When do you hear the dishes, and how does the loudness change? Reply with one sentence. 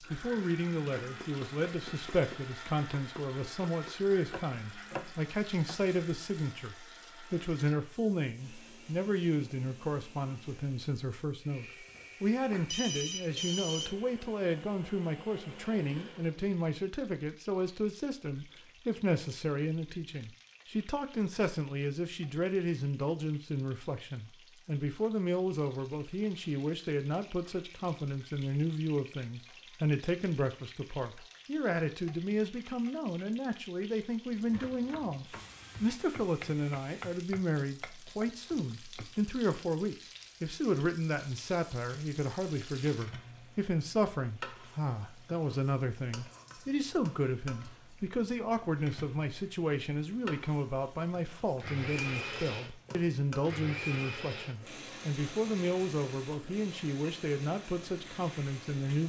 The dishes can't be heard in this clip.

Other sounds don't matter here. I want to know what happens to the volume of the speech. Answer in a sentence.
The volume of the speech stays about the same.